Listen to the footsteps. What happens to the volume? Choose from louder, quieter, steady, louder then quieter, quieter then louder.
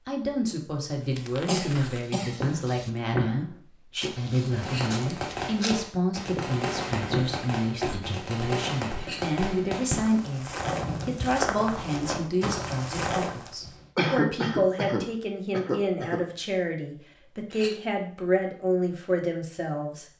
quieter then louder.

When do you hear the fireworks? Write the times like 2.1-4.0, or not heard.
4.5-13.9.